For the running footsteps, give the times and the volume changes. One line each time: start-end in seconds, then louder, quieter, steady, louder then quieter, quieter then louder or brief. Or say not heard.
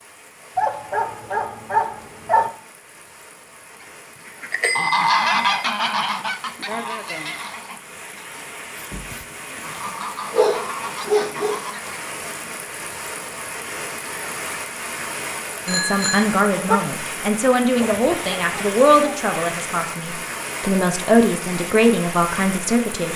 not heard.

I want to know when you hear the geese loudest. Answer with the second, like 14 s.
5 s.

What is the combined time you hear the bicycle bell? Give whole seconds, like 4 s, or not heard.
2 s.